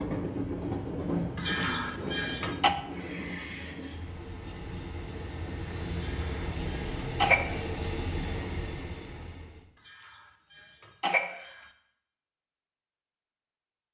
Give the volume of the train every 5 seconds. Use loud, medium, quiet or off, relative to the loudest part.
loud, loud, off.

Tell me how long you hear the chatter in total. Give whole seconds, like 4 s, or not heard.
not heard.